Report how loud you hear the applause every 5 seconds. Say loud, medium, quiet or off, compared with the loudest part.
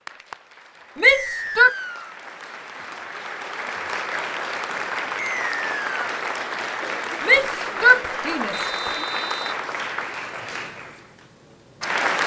medium, loud, loud.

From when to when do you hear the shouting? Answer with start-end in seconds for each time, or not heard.
0.9-1.8, 7.2-9.1.